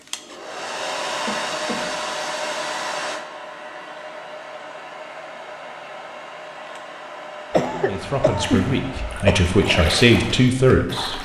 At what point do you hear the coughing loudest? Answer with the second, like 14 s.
8 s.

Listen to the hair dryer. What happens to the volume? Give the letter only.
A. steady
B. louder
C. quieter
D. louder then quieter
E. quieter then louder
C.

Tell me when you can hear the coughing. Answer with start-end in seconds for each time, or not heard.
1.2-2.1, 7.5-9.4.